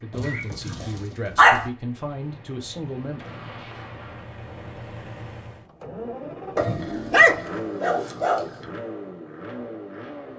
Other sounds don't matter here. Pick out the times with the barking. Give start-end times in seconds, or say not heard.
0.1-1.7, 6.5-8.5.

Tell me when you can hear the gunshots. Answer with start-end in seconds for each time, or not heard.
3.1-4.2.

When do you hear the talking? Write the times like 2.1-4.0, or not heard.
0.0-3.4.